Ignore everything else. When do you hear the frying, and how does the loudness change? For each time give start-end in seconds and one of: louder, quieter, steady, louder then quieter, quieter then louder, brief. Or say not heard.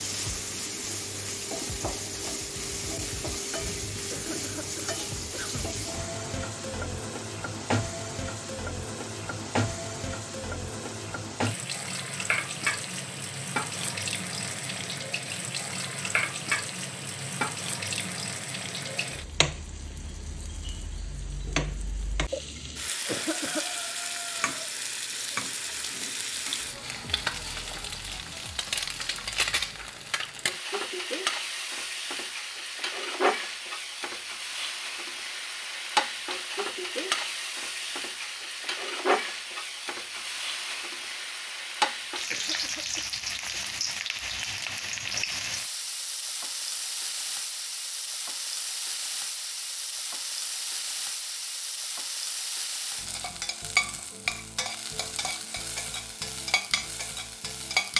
0.0-57.9 steady.